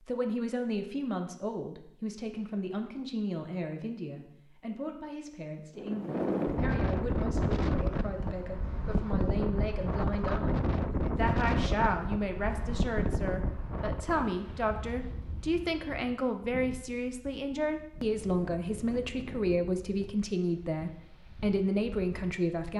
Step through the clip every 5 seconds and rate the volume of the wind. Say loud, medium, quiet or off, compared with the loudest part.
off, loud, loud, quiet, quiet.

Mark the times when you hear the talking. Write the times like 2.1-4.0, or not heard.
0.0-22.7.